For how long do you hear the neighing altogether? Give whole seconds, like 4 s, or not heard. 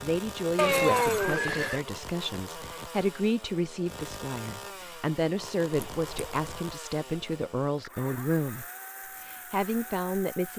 2 s.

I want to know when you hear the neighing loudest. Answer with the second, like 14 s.
1 s.